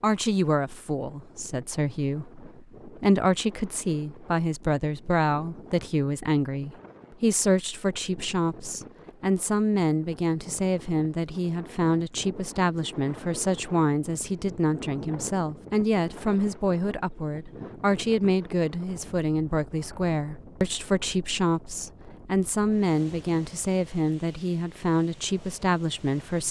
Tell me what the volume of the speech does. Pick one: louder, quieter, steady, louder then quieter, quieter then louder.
steady.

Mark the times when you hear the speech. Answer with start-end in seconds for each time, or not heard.
0.0-26.4.